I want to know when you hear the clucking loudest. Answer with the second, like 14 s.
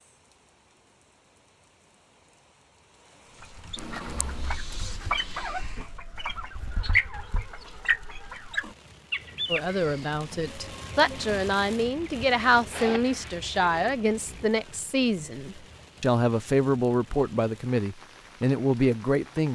7 s.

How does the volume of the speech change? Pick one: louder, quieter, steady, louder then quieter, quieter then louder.
steady.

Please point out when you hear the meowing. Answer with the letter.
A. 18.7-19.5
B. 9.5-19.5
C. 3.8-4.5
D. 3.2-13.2
C.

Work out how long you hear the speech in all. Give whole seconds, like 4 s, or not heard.
10 s.